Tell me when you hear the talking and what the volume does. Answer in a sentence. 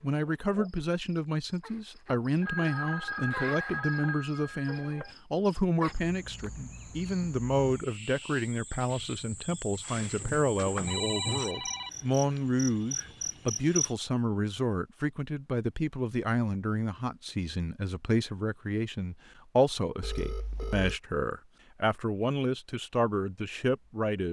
The talking can be heard from 0.0 to 24.2 s, at a steady volume.